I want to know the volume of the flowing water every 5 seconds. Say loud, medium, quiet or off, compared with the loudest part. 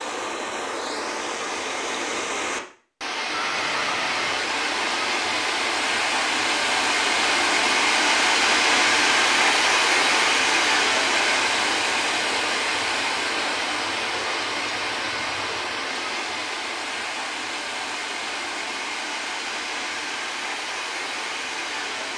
medium, loud, loud, medium, medium.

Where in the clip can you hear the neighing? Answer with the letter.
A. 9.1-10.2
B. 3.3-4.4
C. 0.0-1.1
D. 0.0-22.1
B.